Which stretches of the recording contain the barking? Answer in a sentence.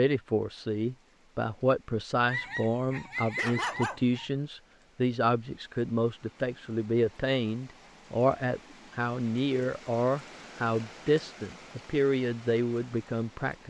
You can hear the barking from 2.2 to 4.2 s.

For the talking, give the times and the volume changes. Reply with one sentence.
You can hear the talking from 0.0 to 13.6 s, at a steady volume.